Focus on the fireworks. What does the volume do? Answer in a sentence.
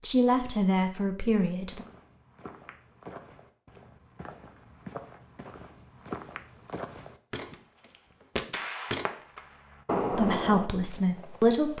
The volume of the fireworks goes up, then down.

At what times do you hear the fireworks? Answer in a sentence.
You can hear the fireworks from 7.5 to 11.7 s.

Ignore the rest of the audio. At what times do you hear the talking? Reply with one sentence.
You can hear the talking from 0.0 to 1.9 s and from 10.1 to 11.7 s.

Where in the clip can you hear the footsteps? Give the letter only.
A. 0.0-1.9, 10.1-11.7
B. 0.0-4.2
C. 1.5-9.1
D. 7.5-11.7
C.